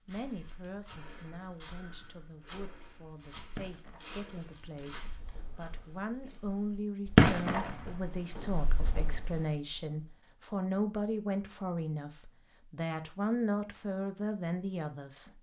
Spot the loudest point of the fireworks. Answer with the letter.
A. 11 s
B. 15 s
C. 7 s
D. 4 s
C.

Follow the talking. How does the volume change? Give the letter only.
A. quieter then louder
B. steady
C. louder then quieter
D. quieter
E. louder
E.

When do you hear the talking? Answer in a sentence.
You can hear the talking from 0.1 to 15.3 s.